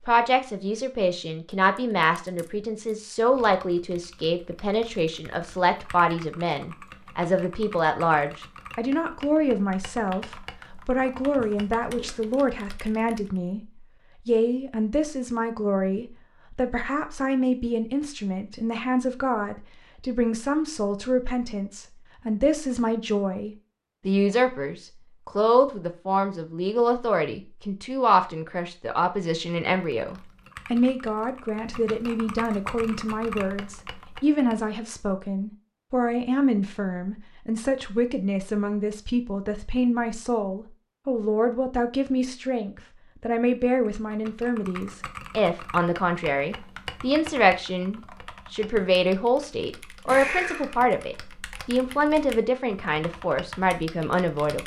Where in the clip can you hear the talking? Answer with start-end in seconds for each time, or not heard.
0.1-13.6, 14.2-54.6.